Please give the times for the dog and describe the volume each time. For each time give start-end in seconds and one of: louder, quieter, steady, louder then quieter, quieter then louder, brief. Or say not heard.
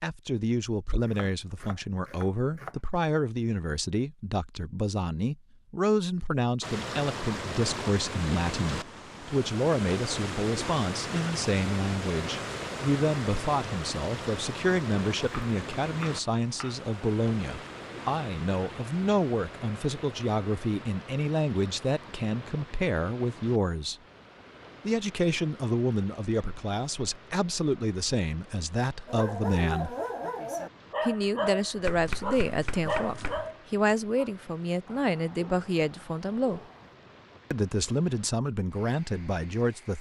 29.1-37.0 quieter.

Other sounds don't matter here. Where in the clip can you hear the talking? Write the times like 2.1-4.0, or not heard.
0.0-23.9, 24.9-29.9, 31.0-36.6, 37.5-39.9.